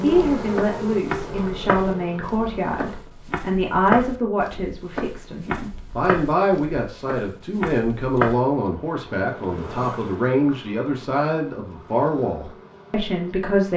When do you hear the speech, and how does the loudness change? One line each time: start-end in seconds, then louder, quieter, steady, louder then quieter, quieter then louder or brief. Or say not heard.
0.0-13.7 steady.